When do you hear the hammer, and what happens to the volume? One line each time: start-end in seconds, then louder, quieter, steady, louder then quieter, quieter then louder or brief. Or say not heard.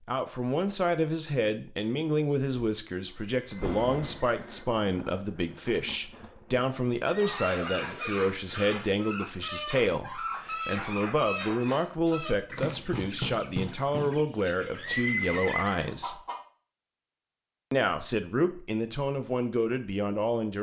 not heard.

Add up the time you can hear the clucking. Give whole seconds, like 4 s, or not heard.
9 s.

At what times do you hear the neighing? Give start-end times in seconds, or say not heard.
3.0-4.7, 7.0-8.7, 14.8-15.8.